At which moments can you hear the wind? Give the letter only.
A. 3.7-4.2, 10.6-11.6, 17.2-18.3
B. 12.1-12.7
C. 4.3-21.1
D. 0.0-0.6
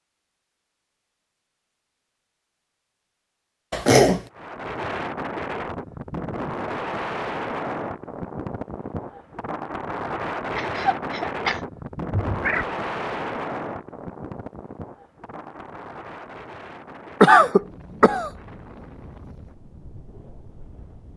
C.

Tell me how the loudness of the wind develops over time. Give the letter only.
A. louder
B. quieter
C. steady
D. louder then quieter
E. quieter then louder
B.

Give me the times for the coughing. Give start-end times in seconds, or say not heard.
3.7-4.2, 10.6-11.6, 17.2-18.3.